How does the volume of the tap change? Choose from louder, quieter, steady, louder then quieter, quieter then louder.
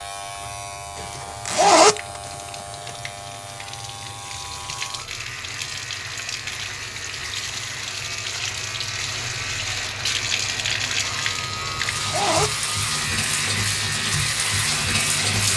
louder.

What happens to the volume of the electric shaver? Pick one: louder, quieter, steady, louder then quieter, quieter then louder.
louder.